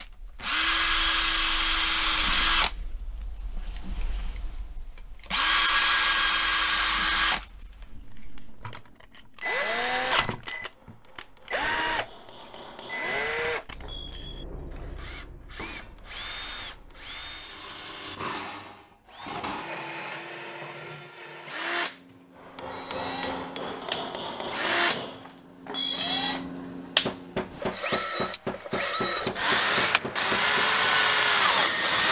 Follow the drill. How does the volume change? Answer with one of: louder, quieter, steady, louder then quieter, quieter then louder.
quieter then louder.